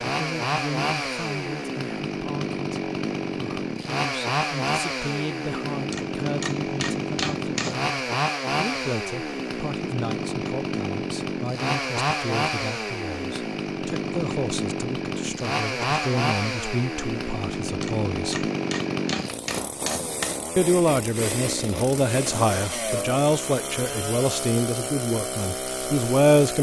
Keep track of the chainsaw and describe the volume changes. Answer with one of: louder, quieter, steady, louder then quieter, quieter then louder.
steady.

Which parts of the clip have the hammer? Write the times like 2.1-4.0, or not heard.
5.9-7.8, 17.8-20.4.